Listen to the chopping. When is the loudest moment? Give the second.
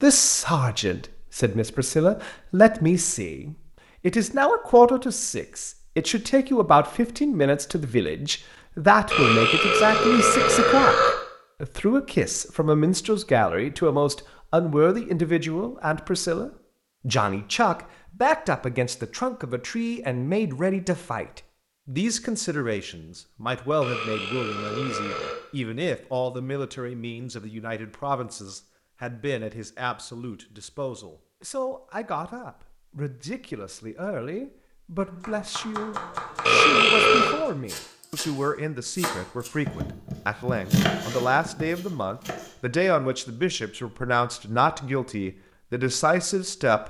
41 s.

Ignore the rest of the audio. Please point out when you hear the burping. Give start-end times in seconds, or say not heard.
9.1-11.1, 23.8-25.4, 36.5-37.4.